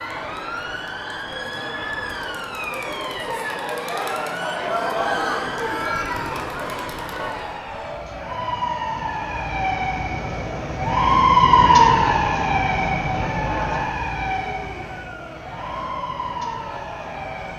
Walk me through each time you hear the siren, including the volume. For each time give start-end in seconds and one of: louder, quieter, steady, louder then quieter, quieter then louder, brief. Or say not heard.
0.0-17.5 louder then quieter.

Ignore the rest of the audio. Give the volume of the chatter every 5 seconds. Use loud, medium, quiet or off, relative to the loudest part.
loud, loud, medium, medium.